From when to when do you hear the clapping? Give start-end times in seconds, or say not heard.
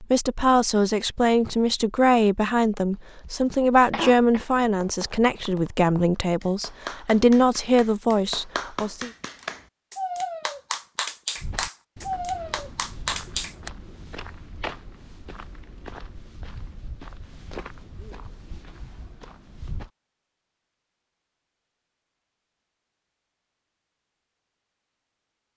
3.7-13.7.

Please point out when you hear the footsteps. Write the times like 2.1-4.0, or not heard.
11.3-19.9.